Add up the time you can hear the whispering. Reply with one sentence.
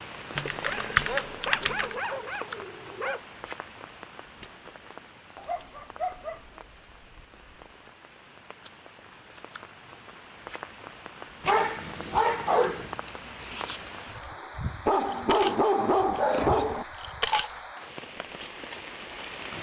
The whispering can't be heard in this clip.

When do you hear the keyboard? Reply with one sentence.
You can hear the keyboard from 0.3 to 1.9 s.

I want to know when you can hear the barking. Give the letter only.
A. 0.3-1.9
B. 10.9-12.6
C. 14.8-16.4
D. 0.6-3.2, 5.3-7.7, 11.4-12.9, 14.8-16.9
D.